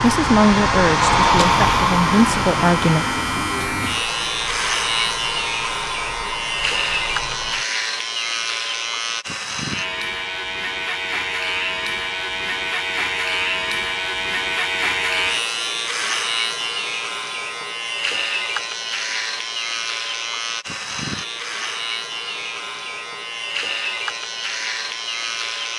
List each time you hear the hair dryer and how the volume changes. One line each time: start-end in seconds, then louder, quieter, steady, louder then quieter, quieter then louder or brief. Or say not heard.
0.0-7.7 quieter.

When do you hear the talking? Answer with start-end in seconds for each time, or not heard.
0.0-3.0.